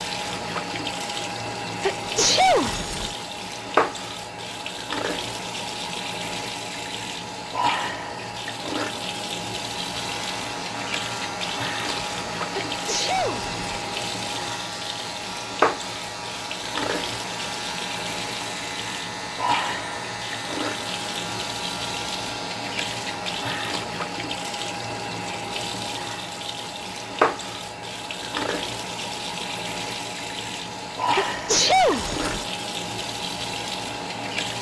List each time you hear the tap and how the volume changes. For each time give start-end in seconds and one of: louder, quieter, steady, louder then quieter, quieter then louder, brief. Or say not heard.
0.0-34.5 steady.